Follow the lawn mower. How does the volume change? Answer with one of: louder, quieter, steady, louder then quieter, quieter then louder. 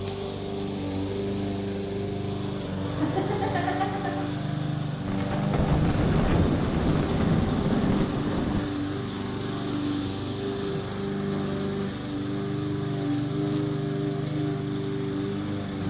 steady.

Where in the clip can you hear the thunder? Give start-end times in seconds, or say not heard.
5.0-8.8.